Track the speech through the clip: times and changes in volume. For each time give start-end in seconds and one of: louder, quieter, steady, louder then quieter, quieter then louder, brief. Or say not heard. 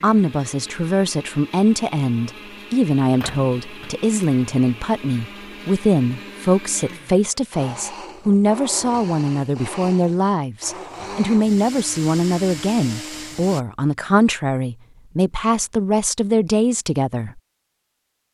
0.0-17.4 steady.